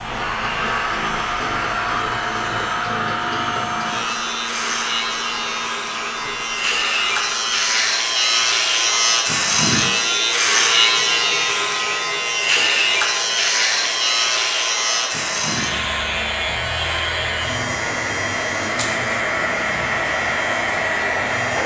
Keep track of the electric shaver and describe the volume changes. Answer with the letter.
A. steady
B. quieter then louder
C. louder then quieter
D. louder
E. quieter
C.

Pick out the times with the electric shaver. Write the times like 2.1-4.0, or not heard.
0.0-21.6.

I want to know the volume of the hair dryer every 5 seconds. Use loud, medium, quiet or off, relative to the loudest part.
loud, medium, medium, loud, loud.